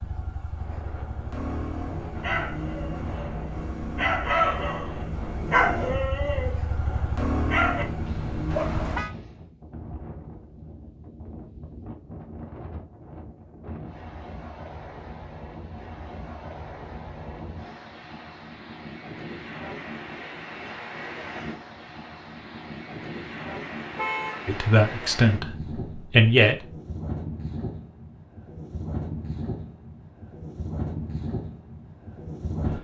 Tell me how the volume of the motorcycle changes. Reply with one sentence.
The loudness of the motorcycle goes up.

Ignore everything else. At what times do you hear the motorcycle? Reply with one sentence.
The motorcycle can be heard from 0.0 to 9.1 s.